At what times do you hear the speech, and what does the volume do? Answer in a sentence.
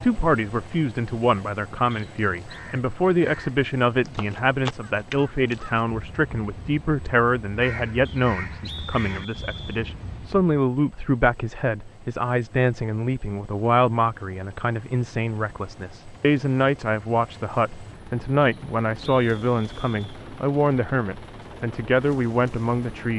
You can hear the speech from 0.0 to 23.1 s, at a steady volume.